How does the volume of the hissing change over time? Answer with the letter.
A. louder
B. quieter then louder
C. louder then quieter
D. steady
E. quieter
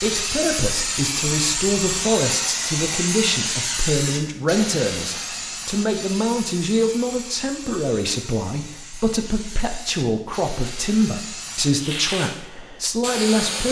B.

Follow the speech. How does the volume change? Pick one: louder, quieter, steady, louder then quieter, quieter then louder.
steady.